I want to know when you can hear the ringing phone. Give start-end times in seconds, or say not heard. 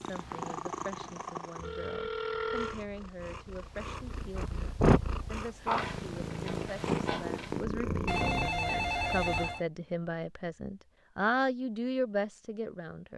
1.6-2.8, 8.1-9.7.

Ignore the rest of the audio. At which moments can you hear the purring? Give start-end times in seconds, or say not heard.
0.0-8.5.